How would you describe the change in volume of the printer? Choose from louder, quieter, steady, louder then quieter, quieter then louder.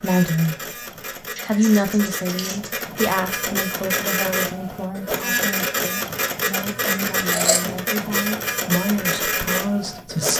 louder.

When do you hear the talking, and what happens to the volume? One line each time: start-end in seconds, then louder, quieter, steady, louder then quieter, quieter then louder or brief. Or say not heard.
0.0-0.8 brief
1.4-10.3 quieter then louder.